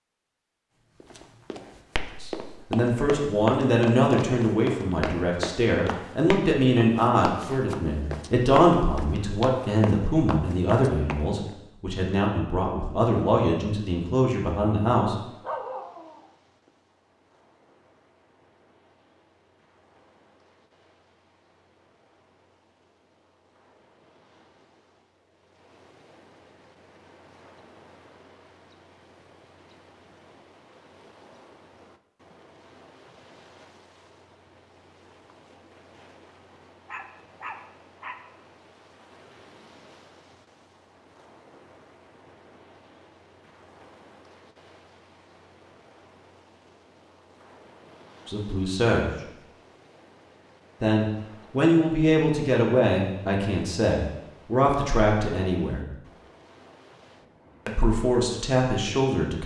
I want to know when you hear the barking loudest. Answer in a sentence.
The volume of the barking peaks at 16 seconds.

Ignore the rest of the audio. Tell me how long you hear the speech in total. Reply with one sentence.
You can hear the speech for 21 seconds altogether.